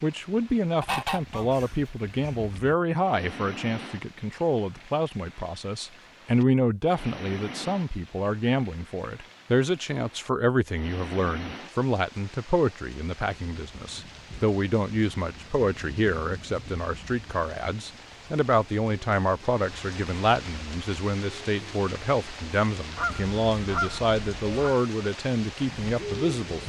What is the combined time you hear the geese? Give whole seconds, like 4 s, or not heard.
4 s.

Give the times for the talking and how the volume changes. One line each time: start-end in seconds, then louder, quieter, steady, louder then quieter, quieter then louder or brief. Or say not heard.
0.0-26.6 steady.